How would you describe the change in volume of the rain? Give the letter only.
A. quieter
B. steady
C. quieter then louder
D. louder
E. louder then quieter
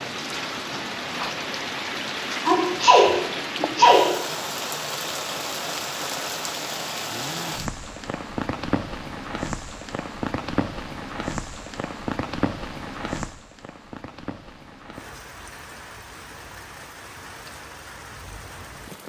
A.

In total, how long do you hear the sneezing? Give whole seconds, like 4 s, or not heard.
2 s.